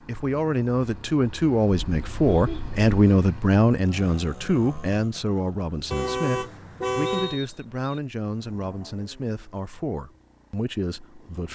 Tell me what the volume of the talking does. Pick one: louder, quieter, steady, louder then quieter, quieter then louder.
quieter.